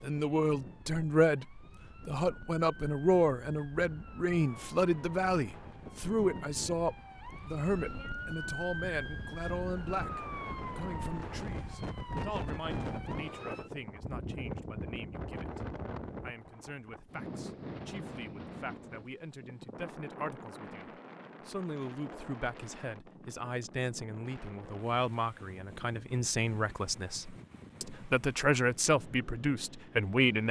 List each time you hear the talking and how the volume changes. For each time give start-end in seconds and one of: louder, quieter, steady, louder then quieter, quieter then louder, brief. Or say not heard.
0.0-30.4 quieter then louder.